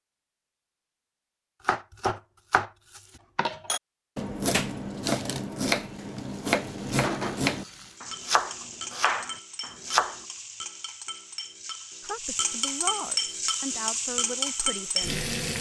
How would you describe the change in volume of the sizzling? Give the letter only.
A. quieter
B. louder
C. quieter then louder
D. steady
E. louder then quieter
B.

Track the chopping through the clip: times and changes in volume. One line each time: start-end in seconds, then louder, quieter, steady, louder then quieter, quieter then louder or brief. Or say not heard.
1.6-10.2 steady.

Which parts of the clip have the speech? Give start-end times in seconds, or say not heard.
12.0-15.2.